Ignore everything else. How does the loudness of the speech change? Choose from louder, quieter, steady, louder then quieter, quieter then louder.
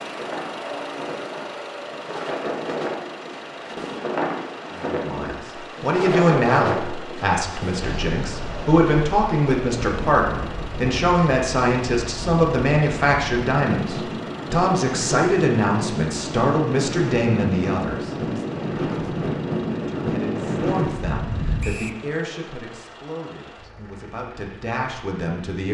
quieter.